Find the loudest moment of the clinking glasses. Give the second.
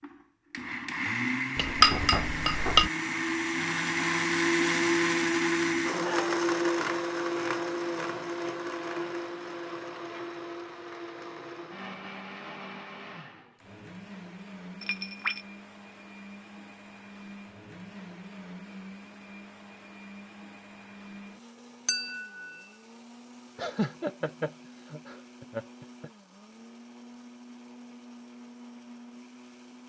2 s.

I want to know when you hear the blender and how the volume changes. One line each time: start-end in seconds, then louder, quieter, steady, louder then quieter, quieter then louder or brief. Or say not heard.
0.0-29.8 quieter.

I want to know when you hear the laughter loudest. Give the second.
24 s.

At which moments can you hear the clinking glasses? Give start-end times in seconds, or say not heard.
1.6-2.9, 14.8-15.4, 21.9-22.4.